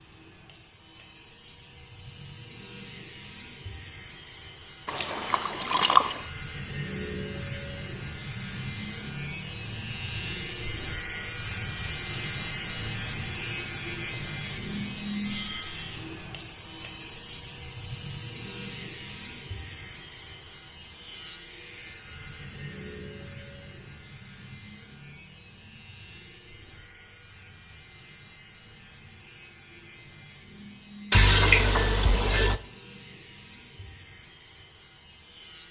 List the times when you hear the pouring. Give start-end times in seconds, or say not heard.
4.8-6.2, 31.1-32.6.